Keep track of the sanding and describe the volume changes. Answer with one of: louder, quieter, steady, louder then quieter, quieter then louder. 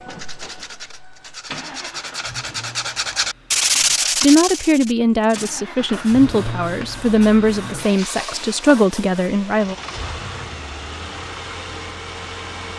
louder then quieter.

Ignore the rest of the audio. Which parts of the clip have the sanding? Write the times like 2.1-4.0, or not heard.
0.1-9.2.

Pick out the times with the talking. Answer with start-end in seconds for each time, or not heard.
4.2-9.8.